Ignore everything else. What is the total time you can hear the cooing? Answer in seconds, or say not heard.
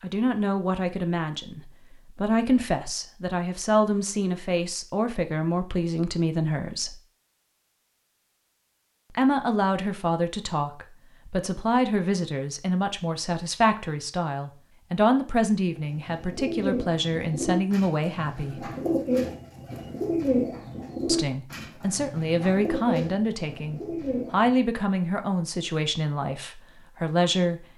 9 s.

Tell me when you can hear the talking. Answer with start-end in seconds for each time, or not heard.
0.0-7.0, 9.2-18.7, 21.1-27.6.